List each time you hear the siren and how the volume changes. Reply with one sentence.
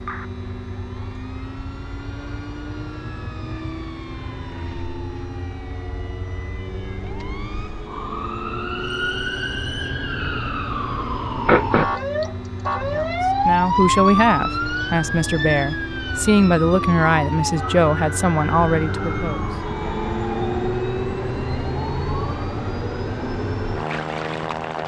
The siren can be heard from 0.0 to 24.8 s, getting louder then quieter.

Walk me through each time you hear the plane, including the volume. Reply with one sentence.
The plane can be heard from 0.0 to 24.8 s, getting louder.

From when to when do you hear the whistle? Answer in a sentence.
The whistle can be heard from 8.8 to 10.1 s.